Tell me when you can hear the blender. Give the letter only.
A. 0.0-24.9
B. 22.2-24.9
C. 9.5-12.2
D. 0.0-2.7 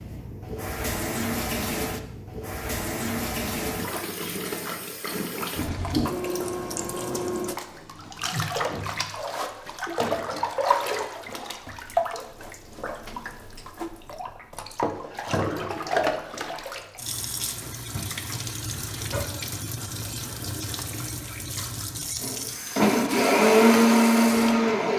B.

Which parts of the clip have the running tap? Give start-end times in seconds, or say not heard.
0.0-24.9.